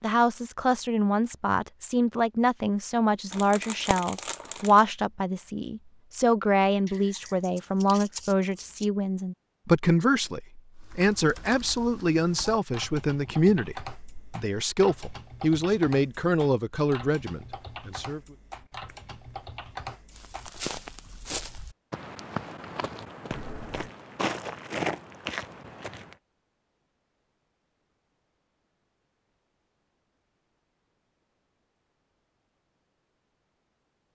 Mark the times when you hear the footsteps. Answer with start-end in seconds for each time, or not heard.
20.1-26.1.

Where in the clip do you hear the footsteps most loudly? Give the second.
25 s.